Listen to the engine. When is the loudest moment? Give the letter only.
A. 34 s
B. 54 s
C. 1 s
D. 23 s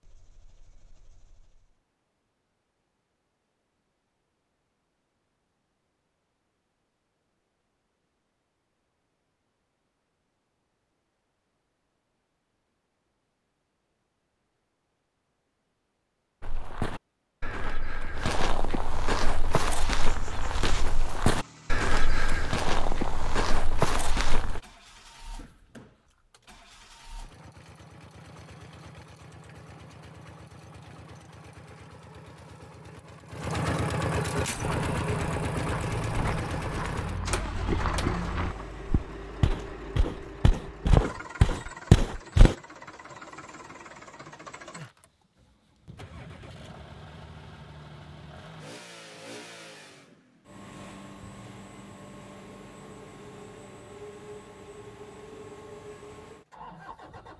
A.